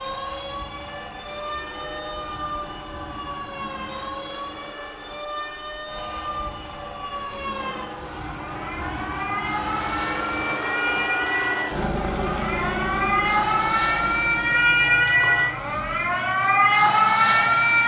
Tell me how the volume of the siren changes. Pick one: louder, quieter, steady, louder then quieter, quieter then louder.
louder.